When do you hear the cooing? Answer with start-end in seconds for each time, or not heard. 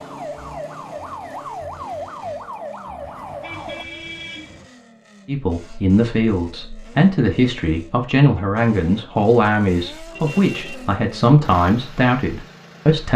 not heard.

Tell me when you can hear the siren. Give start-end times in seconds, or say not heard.
0.0-3.9.